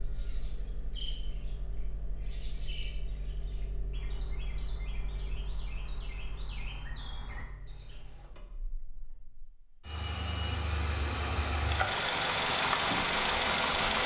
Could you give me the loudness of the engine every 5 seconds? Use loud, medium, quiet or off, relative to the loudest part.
quiet, quiet, loud.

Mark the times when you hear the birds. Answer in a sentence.
You can hear the birds from 0.0 to 8.2 s.